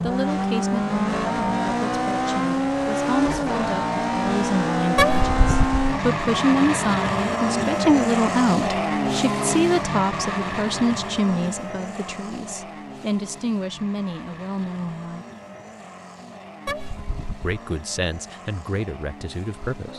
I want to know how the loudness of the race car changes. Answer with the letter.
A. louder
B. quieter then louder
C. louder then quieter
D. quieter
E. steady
D.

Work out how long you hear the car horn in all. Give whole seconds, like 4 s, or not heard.
2 s.